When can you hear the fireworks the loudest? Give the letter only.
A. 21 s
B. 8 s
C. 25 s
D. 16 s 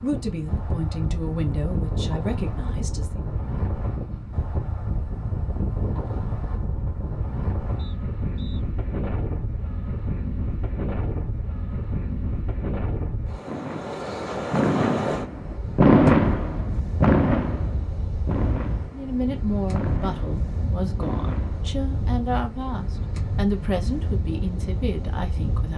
D.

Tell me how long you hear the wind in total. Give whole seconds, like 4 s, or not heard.
26 s.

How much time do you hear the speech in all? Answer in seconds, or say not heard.
10 s.